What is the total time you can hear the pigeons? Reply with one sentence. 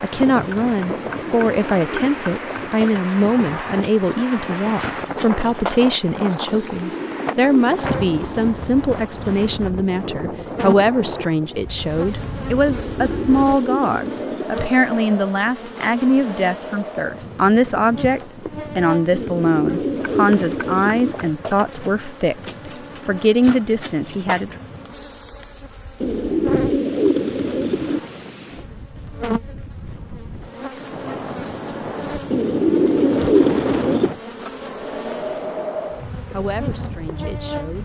The pigeons can be heard for 11 seconds in total.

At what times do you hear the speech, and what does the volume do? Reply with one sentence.
You can hear the speech from 0.0 to 24.6 s, at a steady volume; and briefly from 36.3 to 37.8 s.